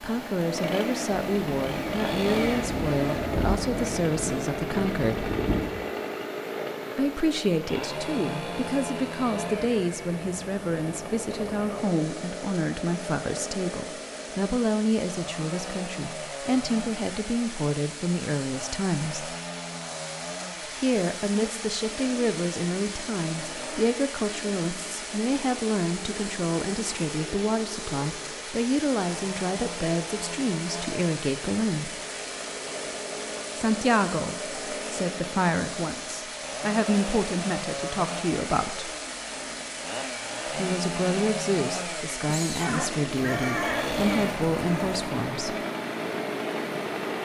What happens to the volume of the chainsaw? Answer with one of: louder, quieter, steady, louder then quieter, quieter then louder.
quieter then louder.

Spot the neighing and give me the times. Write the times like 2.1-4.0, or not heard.
42.6-44.0.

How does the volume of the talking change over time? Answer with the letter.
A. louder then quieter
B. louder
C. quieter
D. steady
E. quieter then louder
D.